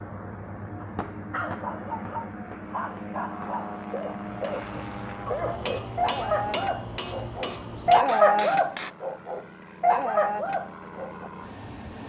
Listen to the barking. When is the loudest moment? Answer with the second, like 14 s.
8 s.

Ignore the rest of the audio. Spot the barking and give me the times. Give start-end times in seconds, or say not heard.
0.8-11.3.